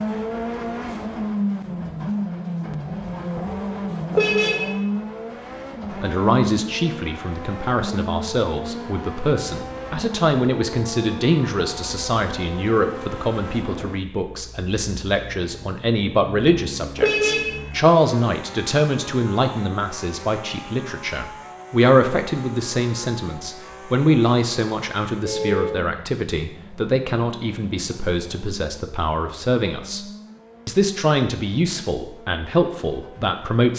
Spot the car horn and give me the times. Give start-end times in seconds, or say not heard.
4.1-4.7, 16.9-17.6, 25.2-25.9.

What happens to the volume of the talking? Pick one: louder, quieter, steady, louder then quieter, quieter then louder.
steady.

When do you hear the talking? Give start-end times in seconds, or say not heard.
6.0-30.1, 30.6-33.7.